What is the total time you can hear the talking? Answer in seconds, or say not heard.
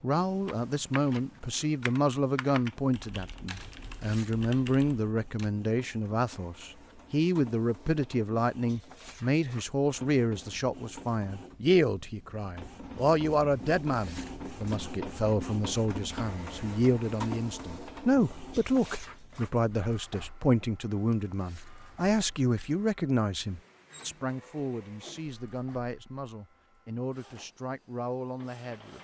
29 s.